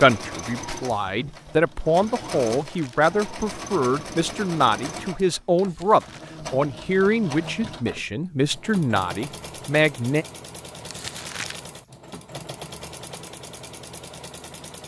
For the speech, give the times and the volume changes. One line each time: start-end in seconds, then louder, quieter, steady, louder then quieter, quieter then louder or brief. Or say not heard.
0.0-10.2 steady.